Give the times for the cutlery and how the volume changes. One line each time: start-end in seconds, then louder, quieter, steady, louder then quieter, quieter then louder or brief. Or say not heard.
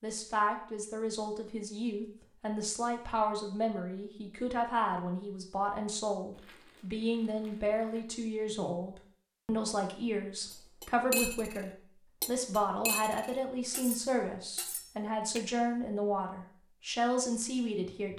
10.5-15.4 quieter.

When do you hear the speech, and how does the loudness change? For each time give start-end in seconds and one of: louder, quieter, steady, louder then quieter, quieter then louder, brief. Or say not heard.
0.0-18.1 steady.